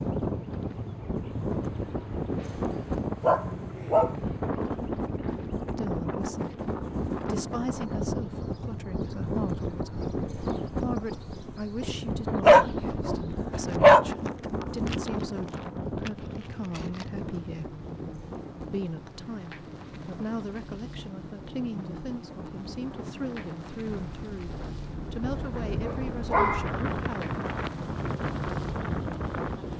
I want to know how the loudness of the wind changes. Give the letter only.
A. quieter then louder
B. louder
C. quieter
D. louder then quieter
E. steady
A.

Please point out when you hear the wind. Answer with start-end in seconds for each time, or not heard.
0.0-29.7.